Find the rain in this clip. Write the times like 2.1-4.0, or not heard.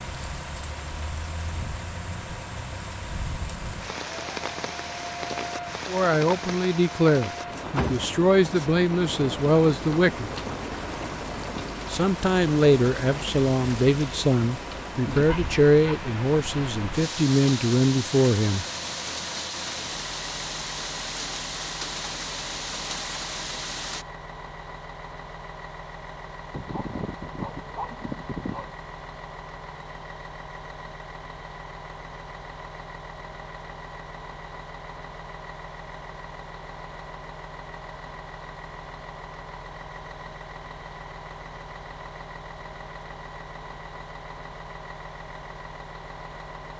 0.0-24.1.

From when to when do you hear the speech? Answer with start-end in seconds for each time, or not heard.
5.8-10.3, 11.9-18.6.